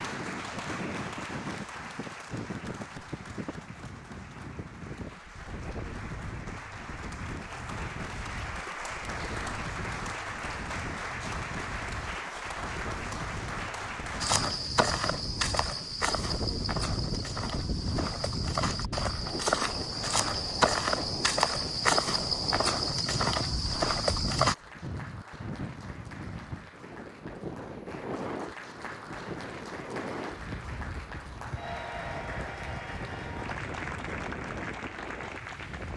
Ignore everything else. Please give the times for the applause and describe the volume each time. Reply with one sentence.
You can hear the applause from 0.0 to 14.4 s, getting quieter then louder; and from 24.4 to 35.9 s, getting louder.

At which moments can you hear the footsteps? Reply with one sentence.
The footsteps can be heard from 14.2 to 24.6 s.